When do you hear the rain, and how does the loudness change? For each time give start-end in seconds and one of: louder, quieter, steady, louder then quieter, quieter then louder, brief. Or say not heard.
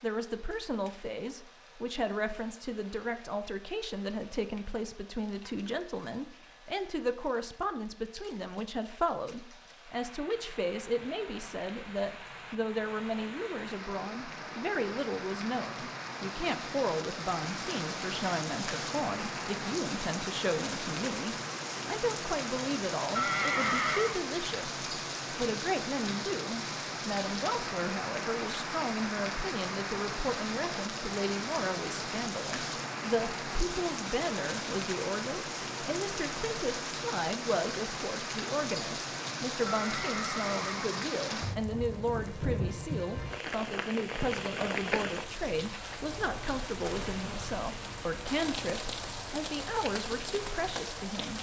0.0-51.3 louder.